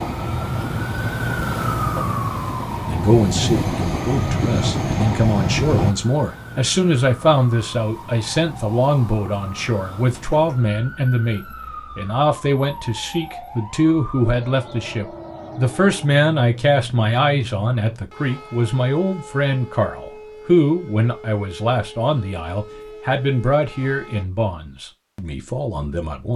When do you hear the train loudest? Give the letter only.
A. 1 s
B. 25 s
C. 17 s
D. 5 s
D.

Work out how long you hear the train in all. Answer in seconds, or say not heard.
6 s.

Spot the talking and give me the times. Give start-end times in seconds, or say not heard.
2.9-26.3.